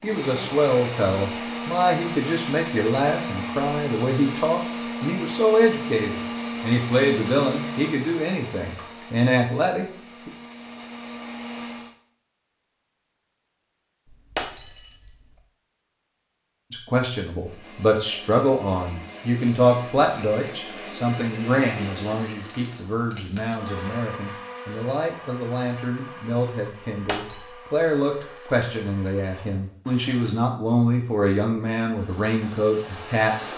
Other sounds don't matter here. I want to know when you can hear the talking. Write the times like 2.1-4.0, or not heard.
0.0-10.3, 16.7-33.5.